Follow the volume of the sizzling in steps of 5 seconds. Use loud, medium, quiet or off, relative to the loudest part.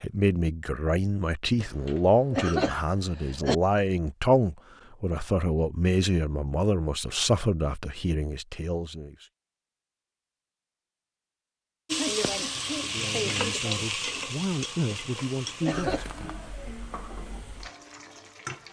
off, off, loud, medium.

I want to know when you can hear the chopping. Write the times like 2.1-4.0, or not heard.
not heard.